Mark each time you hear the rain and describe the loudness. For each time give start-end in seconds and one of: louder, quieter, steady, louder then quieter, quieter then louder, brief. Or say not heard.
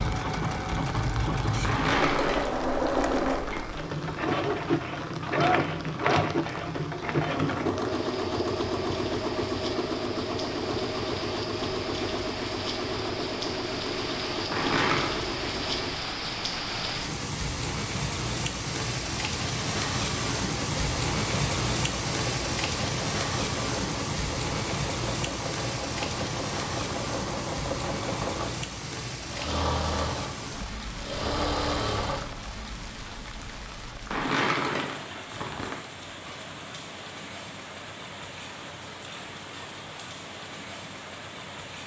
0.0-41.8 louder then quieter.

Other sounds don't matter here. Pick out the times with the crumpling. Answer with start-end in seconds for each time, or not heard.
1.6-3.6, 14.5-15.2, 34.1-35.8.